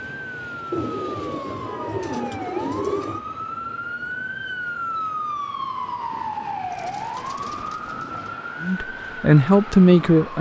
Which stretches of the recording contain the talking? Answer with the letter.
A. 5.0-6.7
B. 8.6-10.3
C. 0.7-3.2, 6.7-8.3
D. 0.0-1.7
B.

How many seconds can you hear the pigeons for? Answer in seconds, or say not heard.
4 s.